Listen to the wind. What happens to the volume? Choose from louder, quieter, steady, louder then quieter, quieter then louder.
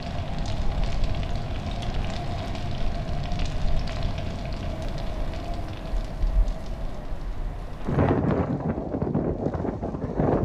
louder.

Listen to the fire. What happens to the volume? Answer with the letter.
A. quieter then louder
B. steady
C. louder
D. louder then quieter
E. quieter
E.